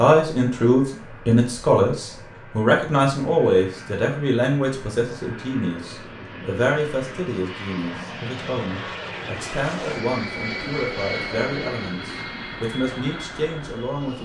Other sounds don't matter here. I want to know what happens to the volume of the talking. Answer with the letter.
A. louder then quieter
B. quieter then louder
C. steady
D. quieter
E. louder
D.